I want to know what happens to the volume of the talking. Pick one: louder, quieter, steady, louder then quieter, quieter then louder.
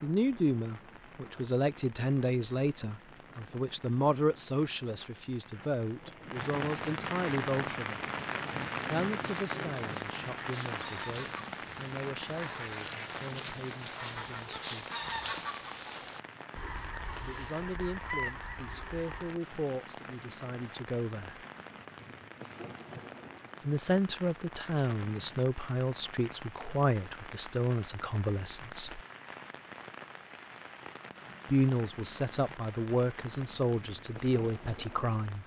quieter then louder.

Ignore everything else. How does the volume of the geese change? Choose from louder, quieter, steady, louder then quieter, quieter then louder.
louder.